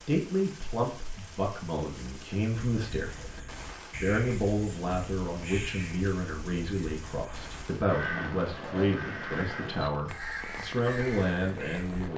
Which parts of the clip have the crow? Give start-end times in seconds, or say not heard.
2.7-12.1.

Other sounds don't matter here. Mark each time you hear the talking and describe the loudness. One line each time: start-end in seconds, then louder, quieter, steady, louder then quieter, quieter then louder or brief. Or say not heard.
0.0-12.1 steady.